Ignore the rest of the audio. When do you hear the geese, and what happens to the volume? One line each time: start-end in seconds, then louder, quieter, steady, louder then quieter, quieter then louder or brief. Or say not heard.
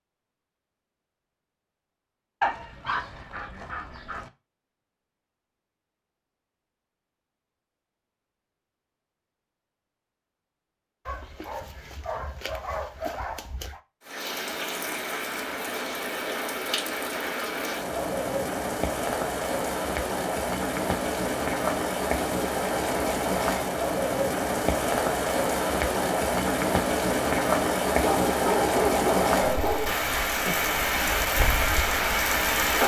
not heard.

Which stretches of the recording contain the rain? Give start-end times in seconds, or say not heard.
14.0-32.8.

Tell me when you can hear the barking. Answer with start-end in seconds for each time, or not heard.
2.4-4.3, 11.1-13.8, 28.0-30.0.